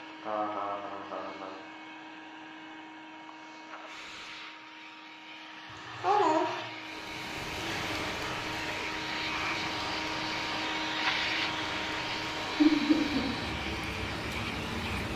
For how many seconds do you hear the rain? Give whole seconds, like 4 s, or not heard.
8 s.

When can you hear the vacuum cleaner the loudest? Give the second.
11 s.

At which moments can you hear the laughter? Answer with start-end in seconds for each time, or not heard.
0.2-1.6, 5.7-6.5, 12.6-13.2.